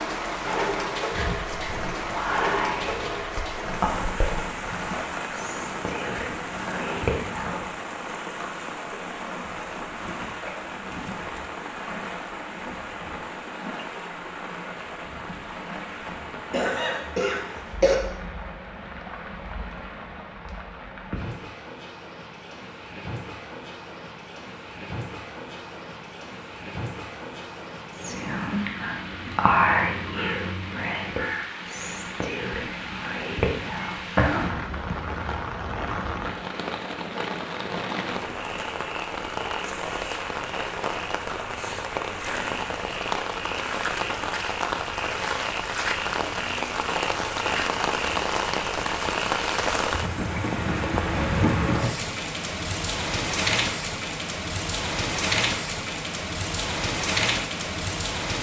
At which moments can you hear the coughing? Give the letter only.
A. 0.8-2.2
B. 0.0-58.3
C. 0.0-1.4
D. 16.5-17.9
D.